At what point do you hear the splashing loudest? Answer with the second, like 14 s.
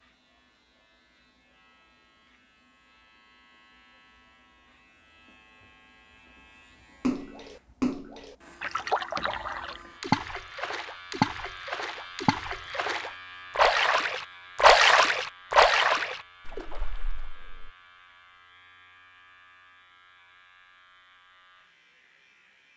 15 s.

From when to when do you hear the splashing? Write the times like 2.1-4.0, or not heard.
7.0-17.7.